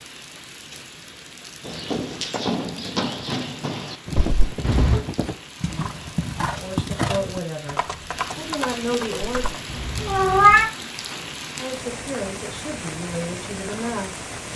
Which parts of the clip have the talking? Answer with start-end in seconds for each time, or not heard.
6.5-9.6, 11.6-14.3.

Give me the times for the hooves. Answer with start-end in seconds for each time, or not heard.
1.6-9.7.